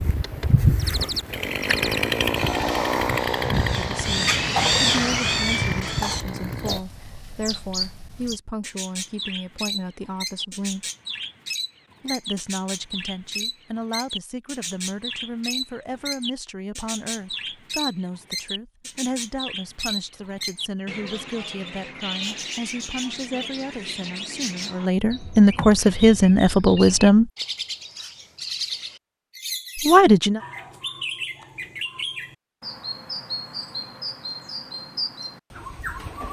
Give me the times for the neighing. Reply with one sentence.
You can't hear the neighing here.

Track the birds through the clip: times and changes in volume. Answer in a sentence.
The birds can be heard from 0.1 to 36.2 s, getting quieter.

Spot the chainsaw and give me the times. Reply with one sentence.
The chainsaw can be heard from 0.0 to 6.8 s.